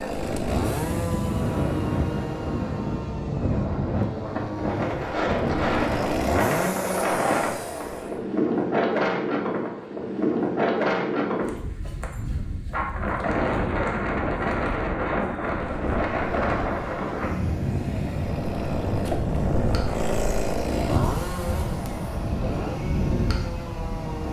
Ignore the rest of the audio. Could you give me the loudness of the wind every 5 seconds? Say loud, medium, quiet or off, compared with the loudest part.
loud, loud, loud, loud, medium.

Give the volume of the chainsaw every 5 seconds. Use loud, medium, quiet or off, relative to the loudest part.
loud, loud, off, loud, loud.